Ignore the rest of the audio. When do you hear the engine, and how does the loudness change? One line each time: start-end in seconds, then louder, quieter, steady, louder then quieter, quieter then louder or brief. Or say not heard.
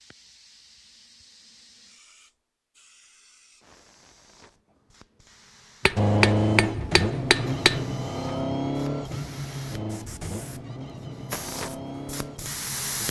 6.0-13.0 quieter.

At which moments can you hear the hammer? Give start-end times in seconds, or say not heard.
5.8-7.8.